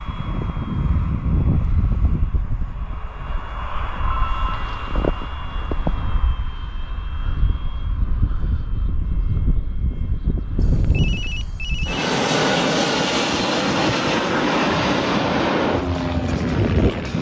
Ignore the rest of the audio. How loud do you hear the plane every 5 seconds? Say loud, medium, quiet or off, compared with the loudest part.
medium, medium, loud, loud.